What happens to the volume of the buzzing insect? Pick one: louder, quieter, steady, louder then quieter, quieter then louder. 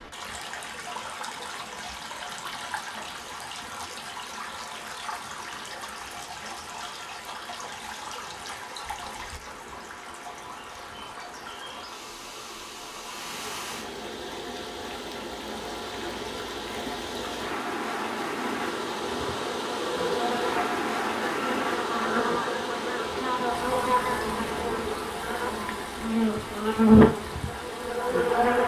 louder.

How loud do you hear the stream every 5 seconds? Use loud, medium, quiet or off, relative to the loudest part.
medium, medium, medium, loud, loud, medium.